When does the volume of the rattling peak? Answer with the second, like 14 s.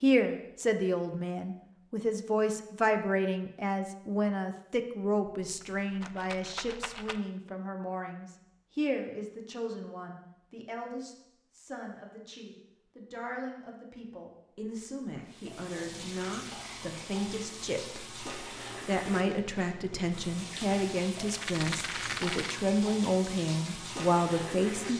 22 s.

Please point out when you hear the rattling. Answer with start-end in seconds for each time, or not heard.
5.4-7.2, 21.1-22.6.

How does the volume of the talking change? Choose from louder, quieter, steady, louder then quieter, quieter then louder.
quieter then louder.